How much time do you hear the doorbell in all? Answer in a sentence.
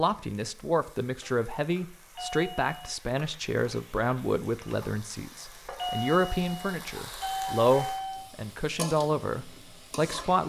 The doorbell can be heard for 3 seconds in total.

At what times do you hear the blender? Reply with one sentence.
The blender can't be heard in this clip.